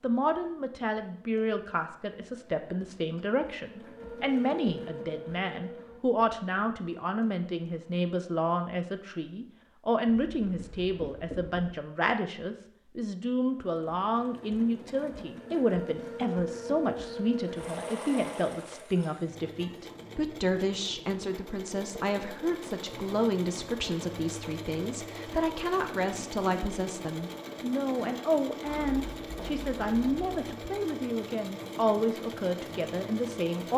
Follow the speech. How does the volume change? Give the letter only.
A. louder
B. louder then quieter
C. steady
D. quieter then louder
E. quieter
C.